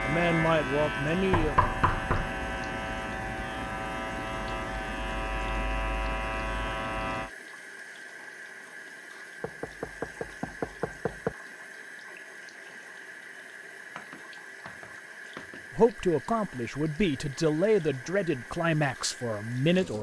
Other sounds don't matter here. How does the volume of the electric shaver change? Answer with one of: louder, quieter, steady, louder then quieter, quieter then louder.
steady.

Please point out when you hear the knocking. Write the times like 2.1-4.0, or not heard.
1.3-2.3, 9.4-11.3, 13.9-15.7.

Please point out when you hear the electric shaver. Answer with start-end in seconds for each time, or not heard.
0.0-7.3.